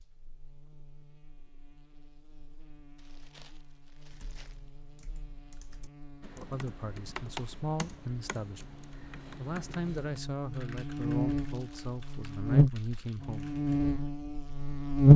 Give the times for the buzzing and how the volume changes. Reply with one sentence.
The buzzing can be heard from 0.0 to 15.1 s, getting louder.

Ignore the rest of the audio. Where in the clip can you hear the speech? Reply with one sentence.
The speech can be heard from 6.3 to 8.8 s and from 9.3 to 13.5 s.